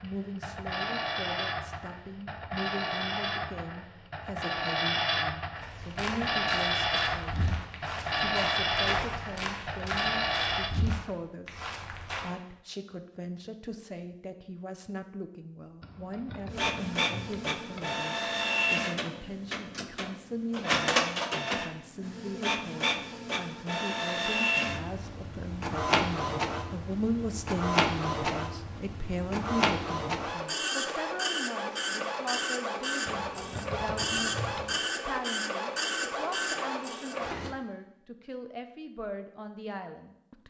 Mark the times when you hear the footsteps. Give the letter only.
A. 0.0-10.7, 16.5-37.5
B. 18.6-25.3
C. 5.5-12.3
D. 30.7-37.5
C.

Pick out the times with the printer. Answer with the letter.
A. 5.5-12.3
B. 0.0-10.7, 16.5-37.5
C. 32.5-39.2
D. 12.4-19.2
B.